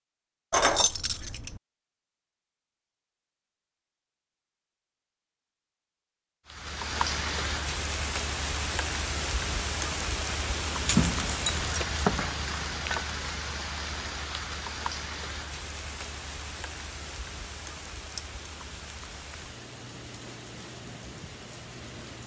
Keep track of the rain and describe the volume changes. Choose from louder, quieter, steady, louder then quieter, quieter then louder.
quieter.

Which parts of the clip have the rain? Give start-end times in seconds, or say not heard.
6.5-22.2.